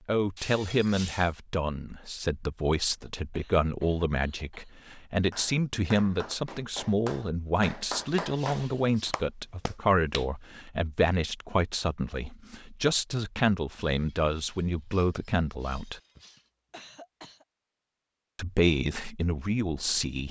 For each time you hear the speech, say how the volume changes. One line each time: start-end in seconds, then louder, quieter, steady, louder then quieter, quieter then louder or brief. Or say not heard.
0.1-16.0 steady
18.4-20.2 brief.